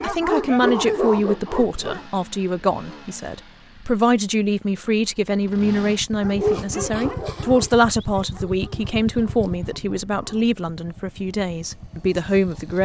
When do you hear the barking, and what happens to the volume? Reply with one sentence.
The barking can be heard briefly from 0.0 to 2.0 s; and from 6.2 to 10.4 s, getting quieter.